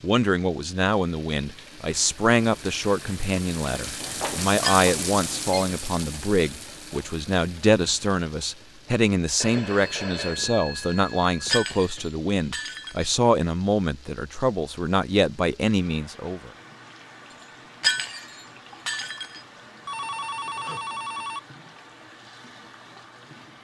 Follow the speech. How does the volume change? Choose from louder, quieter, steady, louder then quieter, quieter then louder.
steady.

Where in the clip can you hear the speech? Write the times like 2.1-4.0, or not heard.
0.0-16.5.